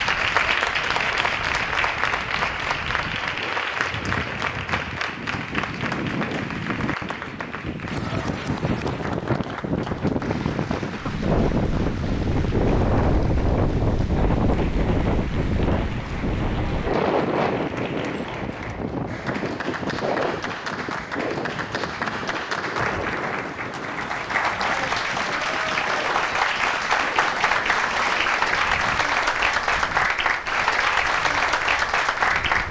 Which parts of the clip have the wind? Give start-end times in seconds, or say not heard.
0.0-32.6.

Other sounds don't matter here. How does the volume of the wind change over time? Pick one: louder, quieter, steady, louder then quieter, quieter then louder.
louder then quieter.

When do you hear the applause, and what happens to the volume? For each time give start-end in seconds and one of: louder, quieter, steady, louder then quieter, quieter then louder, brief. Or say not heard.
0.0-32.6 quieter then louder.